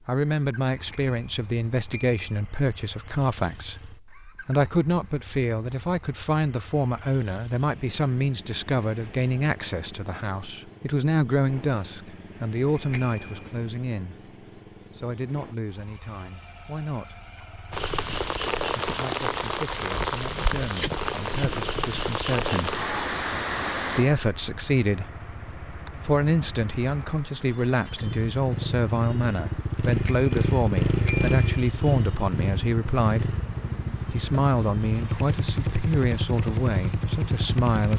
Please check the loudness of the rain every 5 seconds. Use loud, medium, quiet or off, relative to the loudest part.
off, off, off, loud, loud, quiet, quiet, quiet.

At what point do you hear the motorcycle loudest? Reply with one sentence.
The loudest moment of the motorcycle is at 31 seconds.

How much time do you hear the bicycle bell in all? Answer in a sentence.
You can hear the bicycle bell for 4 seconds altogether.